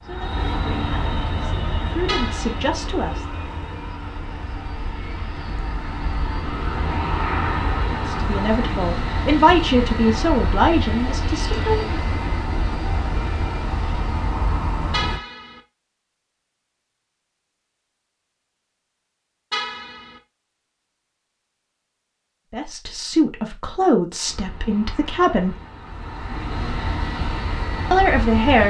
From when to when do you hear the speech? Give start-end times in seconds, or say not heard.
0.0-3.2, 7.9-11.9, 22.5-25.6, 27.9-28.6.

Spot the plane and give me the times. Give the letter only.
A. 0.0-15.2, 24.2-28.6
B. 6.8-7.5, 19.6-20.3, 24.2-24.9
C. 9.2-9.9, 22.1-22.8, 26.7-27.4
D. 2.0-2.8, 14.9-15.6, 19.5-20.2
A.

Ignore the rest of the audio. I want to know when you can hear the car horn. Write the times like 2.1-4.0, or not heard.
2.0-2.8, 14.9-15.6, 19.5-20.2.